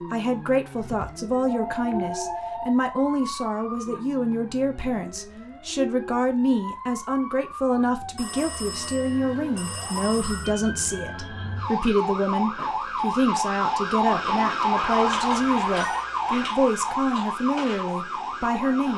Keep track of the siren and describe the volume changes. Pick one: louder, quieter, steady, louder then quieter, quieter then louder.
louder.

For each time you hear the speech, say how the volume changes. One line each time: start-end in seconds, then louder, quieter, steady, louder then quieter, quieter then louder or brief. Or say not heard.
0.0-18.9 steady.